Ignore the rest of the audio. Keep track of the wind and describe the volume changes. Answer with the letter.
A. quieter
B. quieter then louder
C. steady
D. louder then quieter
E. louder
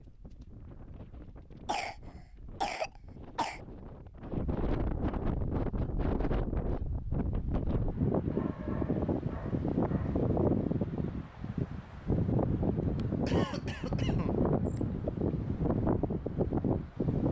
E.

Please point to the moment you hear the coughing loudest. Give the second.
3 s.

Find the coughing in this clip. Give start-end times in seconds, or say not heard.
1.6-3.6, 13.2-14.8.